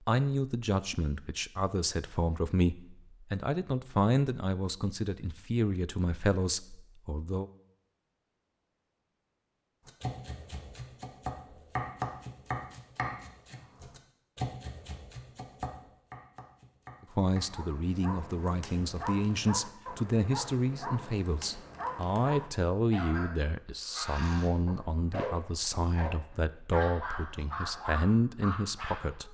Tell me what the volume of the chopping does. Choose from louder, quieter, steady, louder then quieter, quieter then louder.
louder then quieter.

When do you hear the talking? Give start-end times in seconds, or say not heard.
0.1-7.5, 17.1-29.2.